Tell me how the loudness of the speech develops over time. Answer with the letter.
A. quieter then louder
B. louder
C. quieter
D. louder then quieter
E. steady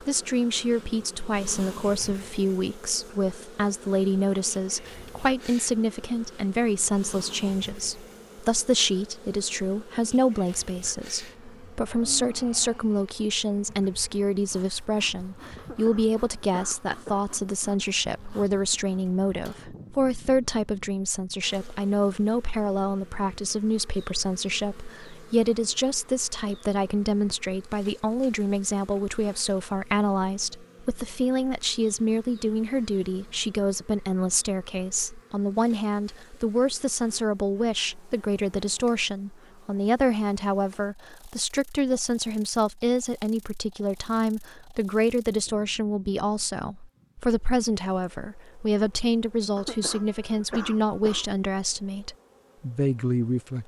E.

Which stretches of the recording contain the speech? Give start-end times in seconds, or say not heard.
0.1-53.6.